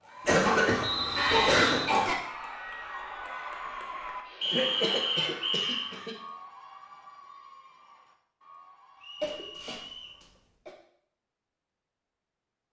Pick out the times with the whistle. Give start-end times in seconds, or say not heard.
0.8-1.9, 4.4-6.0, 9.0-10.2.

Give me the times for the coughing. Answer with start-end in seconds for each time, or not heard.
0.2-2.1, 4.5-6.2, 9.2-10.8.